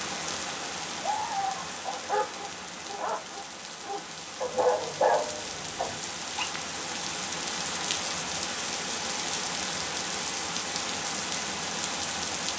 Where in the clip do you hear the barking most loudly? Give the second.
5 s.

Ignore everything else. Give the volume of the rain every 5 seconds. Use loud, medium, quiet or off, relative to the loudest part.
medium, loud, loud.